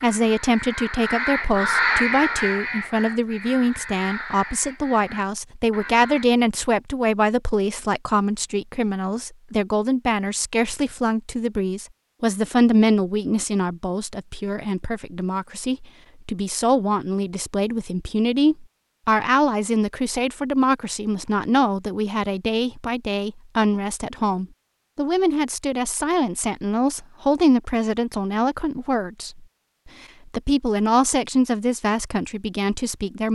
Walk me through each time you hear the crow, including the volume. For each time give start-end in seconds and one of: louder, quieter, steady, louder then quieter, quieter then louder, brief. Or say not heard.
0.0-6.2 louder then quieter.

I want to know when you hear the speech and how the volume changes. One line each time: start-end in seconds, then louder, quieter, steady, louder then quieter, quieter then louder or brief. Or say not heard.
0.0-33.3 steady.